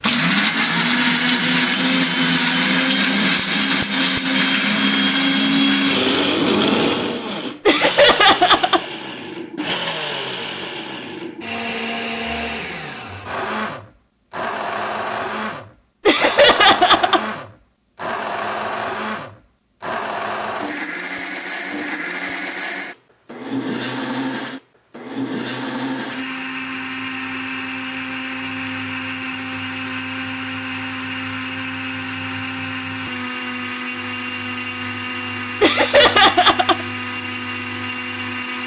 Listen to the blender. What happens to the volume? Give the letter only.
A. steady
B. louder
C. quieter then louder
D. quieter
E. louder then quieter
D.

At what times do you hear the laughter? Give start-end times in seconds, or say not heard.
7.7-8.8, 16.1-17.2, 35.6-36.9.